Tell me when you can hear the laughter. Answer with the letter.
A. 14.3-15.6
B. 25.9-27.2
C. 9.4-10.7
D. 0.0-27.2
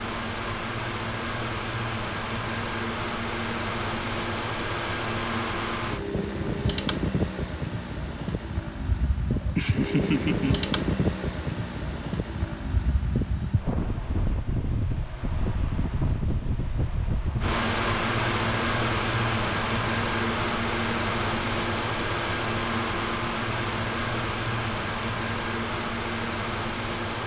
C.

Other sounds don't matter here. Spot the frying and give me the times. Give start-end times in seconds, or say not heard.
not heard.